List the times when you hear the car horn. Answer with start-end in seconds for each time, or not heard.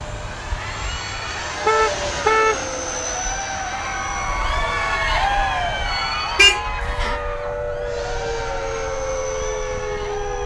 1.6-2.6, 6.3-7.2.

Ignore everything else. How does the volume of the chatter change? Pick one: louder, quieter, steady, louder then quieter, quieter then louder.
louder then quieter.